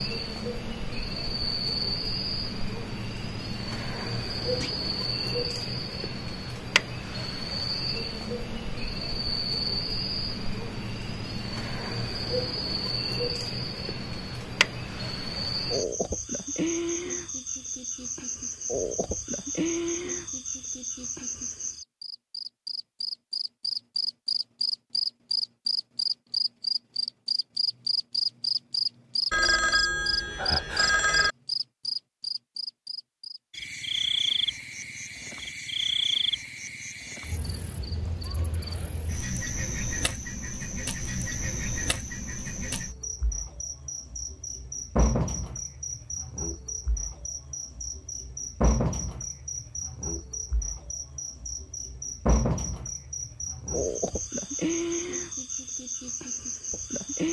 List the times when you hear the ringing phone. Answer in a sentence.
You can hear the ringing phone from 29.3 to 31.4 s.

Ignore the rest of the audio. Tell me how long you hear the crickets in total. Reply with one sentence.
The crickets can be heard for 57 seconds in total.